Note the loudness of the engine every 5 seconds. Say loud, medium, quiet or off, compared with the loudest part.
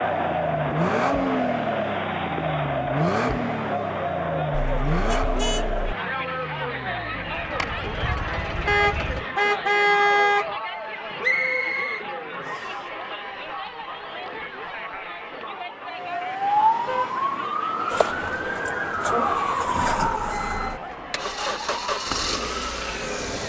loud, medium, off, loud, loud.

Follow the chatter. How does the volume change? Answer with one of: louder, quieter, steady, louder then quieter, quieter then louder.
quieter.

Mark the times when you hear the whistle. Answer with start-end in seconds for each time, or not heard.
11.2-12.8.